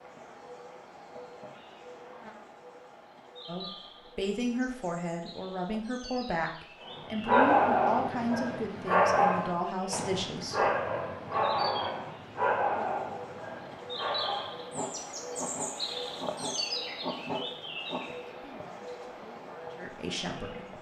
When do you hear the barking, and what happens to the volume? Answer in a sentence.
The barking can be heard from 7.0 to 18.0 s, getting quieter.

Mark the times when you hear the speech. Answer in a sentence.
You can hear the speech from 3.5 to 10.7 s and from 17.4 to 20.7 s.